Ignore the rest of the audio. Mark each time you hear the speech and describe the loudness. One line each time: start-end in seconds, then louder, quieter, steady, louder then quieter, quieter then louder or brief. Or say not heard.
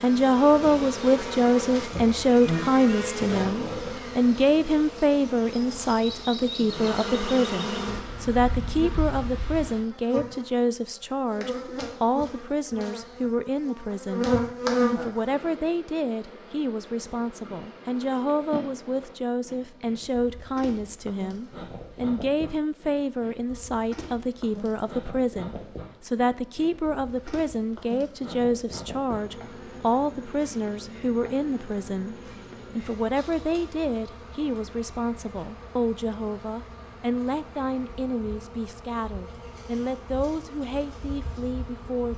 0.0-42.1 quieter.